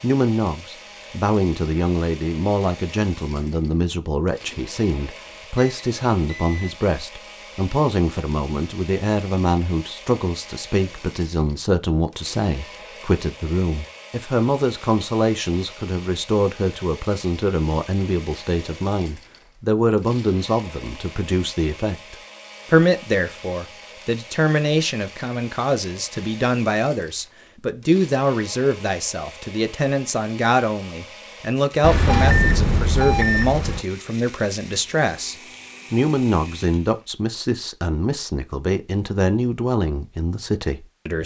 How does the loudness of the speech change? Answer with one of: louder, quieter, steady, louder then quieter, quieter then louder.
steady.